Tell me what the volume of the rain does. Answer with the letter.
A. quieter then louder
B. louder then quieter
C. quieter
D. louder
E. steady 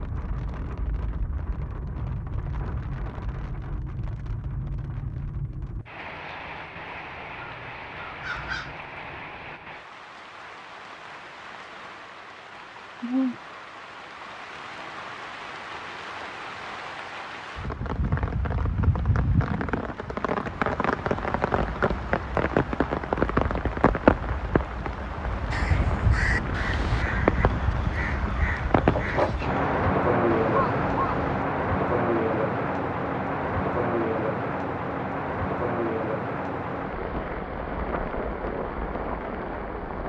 D.